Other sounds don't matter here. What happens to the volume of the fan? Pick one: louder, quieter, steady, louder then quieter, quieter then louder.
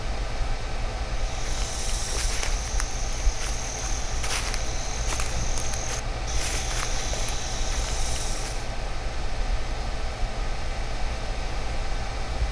steady.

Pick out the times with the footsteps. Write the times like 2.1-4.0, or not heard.
1.1-8.8.